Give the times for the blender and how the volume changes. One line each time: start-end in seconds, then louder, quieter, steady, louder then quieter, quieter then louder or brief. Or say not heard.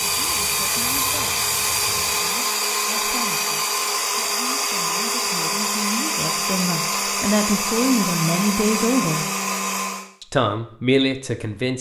0.0-10.1 steady.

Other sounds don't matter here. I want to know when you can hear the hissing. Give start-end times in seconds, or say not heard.
0.0-2.4.